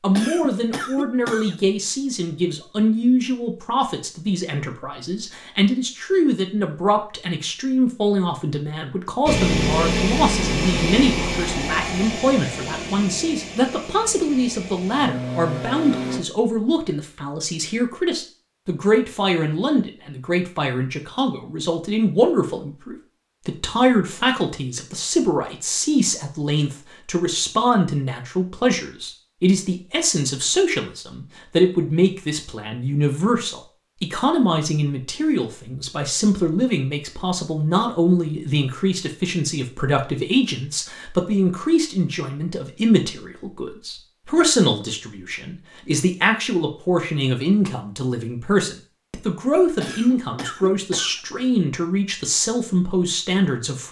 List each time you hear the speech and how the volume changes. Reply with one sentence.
The speech can be heard from 0.0 to 53.8 s, at a steady volume.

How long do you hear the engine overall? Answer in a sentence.
You can hear the engine for 7 seconds altogether.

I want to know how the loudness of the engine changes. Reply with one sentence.
The loudness of the engine goes down, then up.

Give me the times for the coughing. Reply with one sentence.
You can hear the coughing from 0.1 to 1.6 s and from 49.8 to 51.2 s.